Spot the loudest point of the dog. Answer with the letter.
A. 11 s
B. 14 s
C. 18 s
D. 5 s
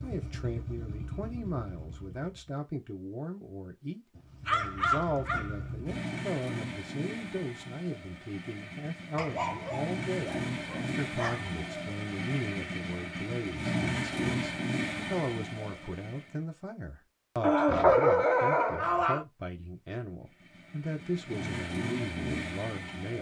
C.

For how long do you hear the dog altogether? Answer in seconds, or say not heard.
6 s.